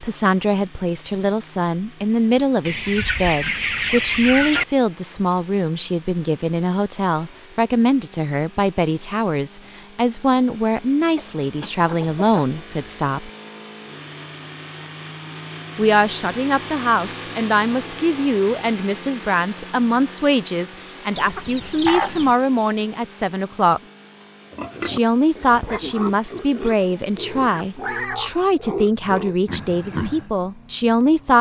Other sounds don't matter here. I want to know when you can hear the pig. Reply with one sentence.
The pig can be heard from 24.5 to 30.3 s.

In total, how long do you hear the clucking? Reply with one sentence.
You can hear the clucking for 5 seconds altogether.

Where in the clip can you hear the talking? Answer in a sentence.
The talking can be heard from 0.0 to 13.3 s, from 15.8 to 23.8 s and from 24.8 to 31.3 s.